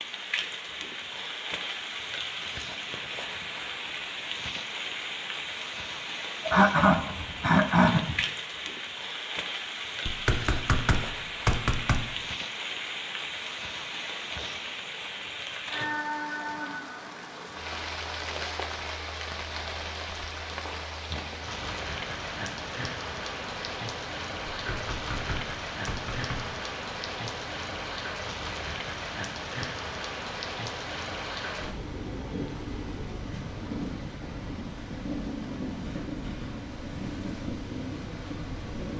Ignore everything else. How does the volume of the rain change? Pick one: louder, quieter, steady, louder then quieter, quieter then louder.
steady.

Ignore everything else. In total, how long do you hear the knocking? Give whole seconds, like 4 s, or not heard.
4 s.